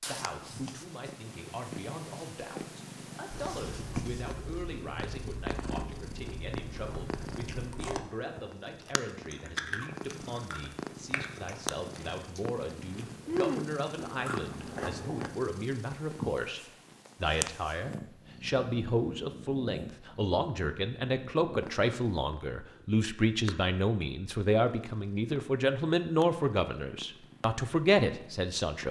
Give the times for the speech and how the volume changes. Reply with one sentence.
The speech can be heard from 0.1 to 28.8 s, getting louder.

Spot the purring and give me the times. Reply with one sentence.
You can hear the purring from 0.0 to 28.8 s.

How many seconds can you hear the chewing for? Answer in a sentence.
The chewing can be heard for 12 seconds in total.